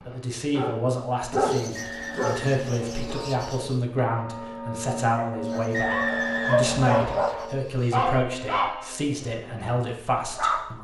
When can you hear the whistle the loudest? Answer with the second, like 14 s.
6 s.